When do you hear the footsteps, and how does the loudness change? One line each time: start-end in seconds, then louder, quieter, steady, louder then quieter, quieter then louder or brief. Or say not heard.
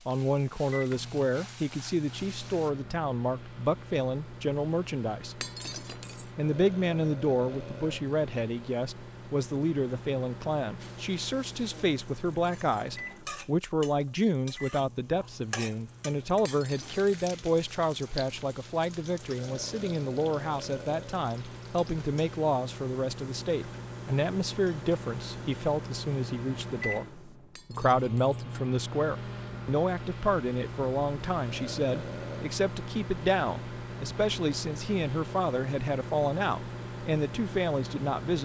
not heard.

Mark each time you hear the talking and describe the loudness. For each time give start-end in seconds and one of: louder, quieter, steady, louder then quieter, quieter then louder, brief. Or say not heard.
0.1-5.4 steady
6.2-38.4 steady.